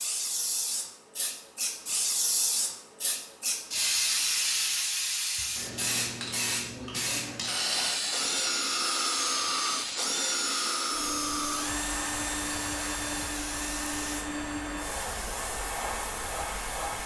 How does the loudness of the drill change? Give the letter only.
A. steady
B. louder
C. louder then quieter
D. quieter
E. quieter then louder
D.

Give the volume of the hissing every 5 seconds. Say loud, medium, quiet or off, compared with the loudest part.
loud, loud, medium, medium.